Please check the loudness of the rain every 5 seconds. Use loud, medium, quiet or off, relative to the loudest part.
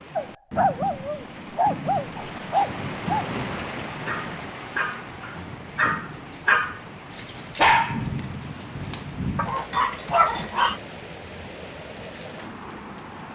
loud, loud, medium.